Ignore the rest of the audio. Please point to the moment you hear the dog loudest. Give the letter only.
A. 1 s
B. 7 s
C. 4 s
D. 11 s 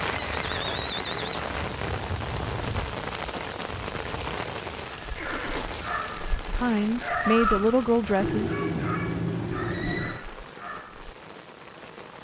B.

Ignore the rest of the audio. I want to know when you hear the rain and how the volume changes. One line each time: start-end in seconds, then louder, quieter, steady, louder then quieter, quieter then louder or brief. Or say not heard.
0.0-12.1 quieter.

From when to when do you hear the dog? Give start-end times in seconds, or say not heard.
4.8-11.1.